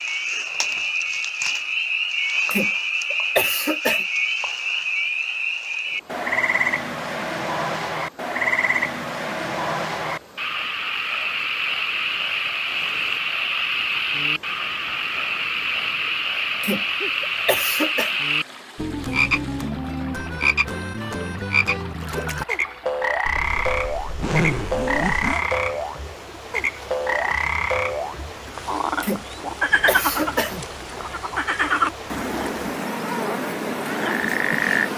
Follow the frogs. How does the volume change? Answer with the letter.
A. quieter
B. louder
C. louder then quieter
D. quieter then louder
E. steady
E.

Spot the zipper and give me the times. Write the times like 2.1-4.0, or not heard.
23.2-25.4.